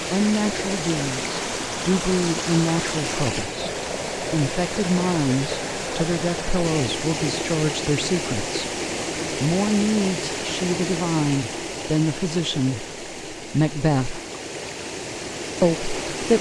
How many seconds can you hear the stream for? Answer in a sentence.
The stream can be heard for 16 seconds in total.